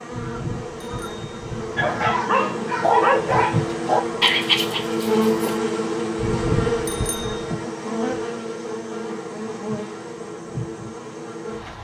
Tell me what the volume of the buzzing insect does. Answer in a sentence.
The volume of the buzzing insect goes up, then down.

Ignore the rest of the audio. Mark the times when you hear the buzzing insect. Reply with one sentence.
You can hear the buzzing insect from 0.0 to 11.7 s.